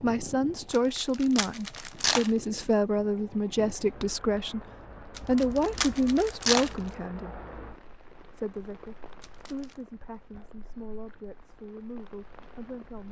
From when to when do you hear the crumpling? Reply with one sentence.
You can hear the crumpling from 0.7 to 2.3 s, from 5.2 to 6.8 s and from 9.2 to 9.8 s.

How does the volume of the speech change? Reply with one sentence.
The loudness of the speech goes down.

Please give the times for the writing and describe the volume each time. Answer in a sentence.
The writing can't be heard in this clip.